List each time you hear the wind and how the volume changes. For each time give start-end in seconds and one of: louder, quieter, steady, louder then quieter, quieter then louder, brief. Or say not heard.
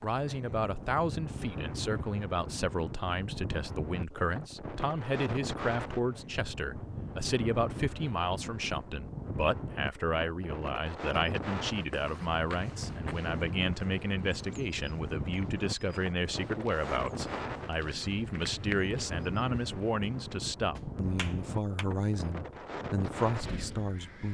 0.0-24.2 steady.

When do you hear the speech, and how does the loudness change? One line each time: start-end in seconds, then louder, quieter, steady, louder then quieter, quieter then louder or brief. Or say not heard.
0.0-24.2 steady.